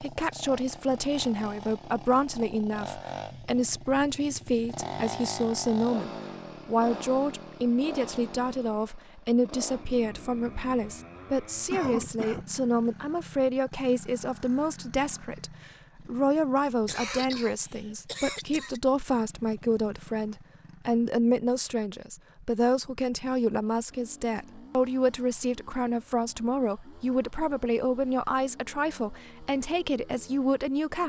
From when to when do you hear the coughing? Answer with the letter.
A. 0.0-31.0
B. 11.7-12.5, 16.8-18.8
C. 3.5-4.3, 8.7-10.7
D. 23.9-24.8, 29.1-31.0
B.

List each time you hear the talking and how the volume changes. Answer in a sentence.
The talking can be heard from 0.0 to 31.0 s, at a steady volume.